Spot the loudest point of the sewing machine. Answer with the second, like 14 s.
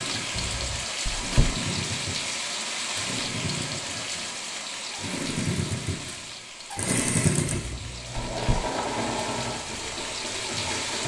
7 s.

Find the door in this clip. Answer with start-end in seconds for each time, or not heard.
0.3-1.5, 7.5-8.6.